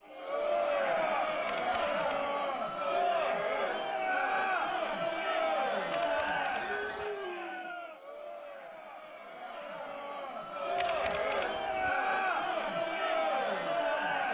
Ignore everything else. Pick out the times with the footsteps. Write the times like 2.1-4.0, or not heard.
not heard.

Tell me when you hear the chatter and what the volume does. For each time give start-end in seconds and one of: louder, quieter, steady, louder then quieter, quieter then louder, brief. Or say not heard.
0.0-14.3 quieter then louder.